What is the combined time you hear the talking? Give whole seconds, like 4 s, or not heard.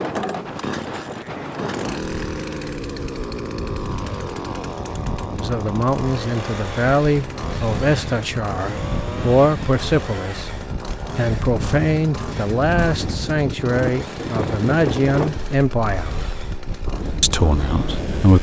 12 s.